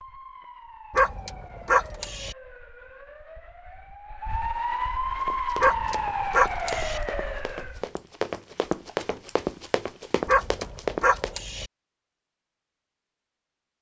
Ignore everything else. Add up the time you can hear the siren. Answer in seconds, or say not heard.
8 s.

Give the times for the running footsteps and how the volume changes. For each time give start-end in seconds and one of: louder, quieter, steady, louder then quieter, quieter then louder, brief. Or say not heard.
5.2-11.3 louder.